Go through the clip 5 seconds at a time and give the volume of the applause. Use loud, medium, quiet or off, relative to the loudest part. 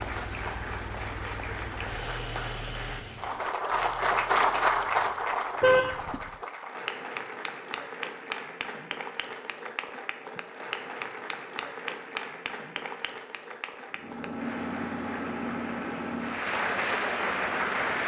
loud, medium, medium, loud.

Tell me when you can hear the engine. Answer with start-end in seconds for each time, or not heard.
0.0-6.5, 13.9-18.0.